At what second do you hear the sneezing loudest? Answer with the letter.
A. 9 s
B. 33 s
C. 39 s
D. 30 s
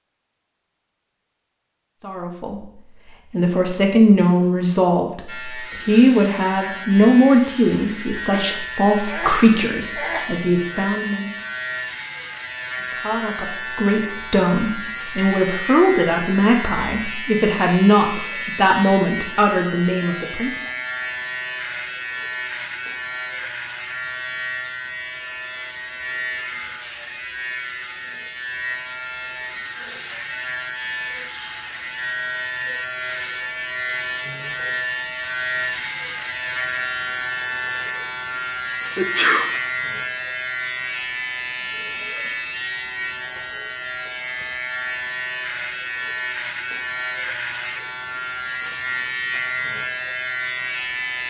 C.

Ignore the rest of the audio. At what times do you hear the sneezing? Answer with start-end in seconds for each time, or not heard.
8.3-10.2, 39.0-39.5.